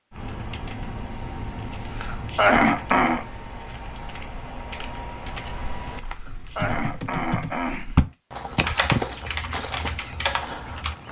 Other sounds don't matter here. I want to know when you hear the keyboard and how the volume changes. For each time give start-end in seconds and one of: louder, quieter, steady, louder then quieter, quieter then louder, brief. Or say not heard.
0.1-10.9 louder.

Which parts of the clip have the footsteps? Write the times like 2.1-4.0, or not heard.
5.8-11.0.